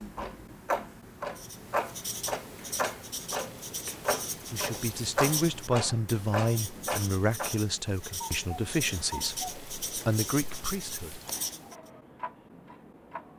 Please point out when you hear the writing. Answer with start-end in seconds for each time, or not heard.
1.4-11.8.